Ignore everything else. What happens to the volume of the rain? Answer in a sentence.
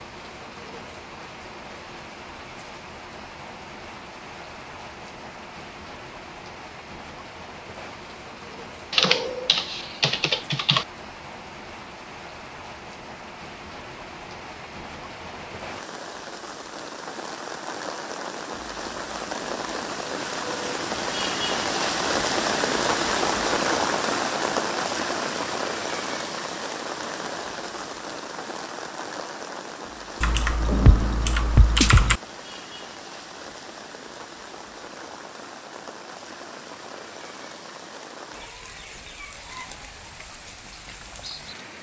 The loudness of the rain goes up, then down.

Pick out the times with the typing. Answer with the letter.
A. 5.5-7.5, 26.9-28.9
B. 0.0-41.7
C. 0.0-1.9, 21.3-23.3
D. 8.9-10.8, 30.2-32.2
D.